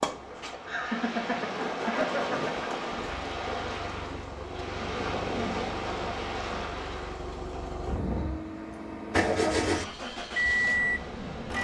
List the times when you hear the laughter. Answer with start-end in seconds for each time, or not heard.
0.7-2.5.